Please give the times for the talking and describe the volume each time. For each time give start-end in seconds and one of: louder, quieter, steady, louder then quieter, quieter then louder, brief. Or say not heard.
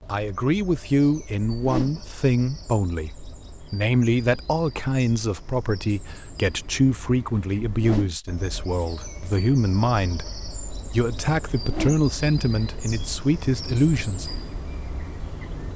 0.1-14.2 steady.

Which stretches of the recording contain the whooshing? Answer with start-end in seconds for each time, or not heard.
1.4-1.9, 7.7-8.2, 11.5-12.0.